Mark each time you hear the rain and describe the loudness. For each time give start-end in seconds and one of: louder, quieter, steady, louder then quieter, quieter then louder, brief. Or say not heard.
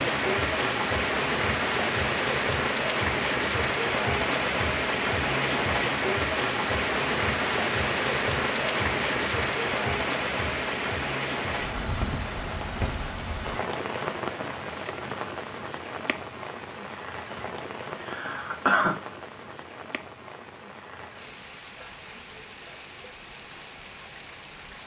0.0-24.8 quieter.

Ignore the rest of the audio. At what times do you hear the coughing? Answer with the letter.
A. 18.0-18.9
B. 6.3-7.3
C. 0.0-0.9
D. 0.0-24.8
A.